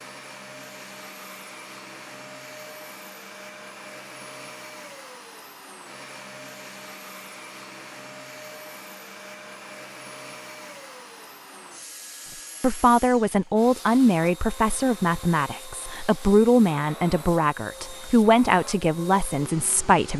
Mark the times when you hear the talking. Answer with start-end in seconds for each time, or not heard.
12.6-20.1.